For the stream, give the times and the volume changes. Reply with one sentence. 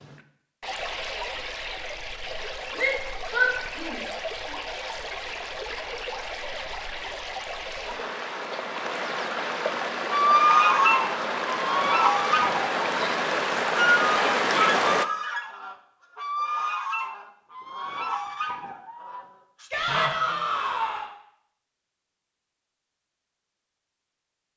The stream can be heard from 0.0 to 15.1 s, getting louder.